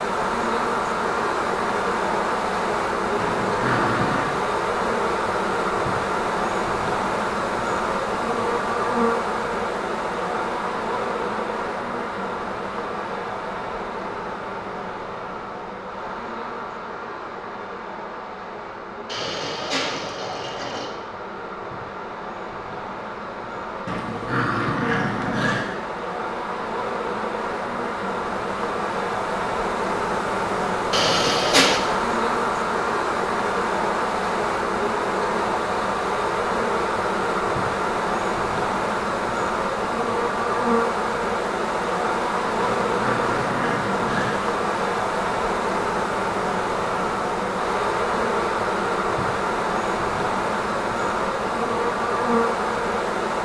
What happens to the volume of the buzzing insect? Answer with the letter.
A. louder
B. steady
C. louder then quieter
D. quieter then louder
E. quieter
D.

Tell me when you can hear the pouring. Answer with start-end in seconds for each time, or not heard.
19.1-20.9, 30.9-31.8.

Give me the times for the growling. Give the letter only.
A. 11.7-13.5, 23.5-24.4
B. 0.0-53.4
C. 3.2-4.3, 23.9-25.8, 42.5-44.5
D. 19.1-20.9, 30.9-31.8
C.